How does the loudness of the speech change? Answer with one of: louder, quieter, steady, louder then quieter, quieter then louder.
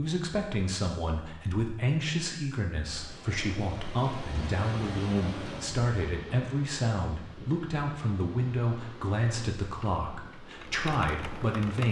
steady.